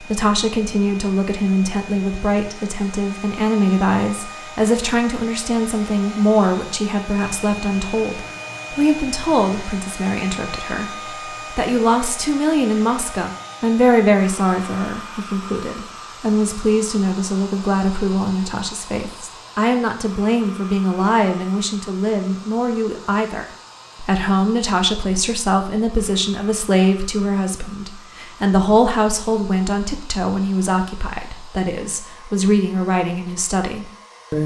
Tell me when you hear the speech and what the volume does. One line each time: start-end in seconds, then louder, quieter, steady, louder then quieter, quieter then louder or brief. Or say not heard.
0.0-34.4 steady.